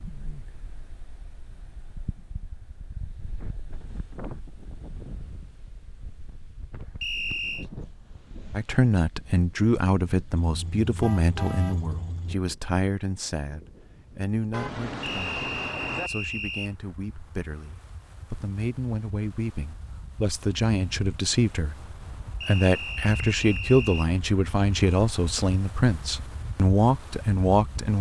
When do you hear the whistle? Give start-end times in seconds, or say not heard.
7.0-7.7, 15.0-16.7, 22.4-24.1.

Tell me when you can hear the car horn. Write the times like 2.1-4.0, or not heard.
10.3-12.3, 14.5-16.1.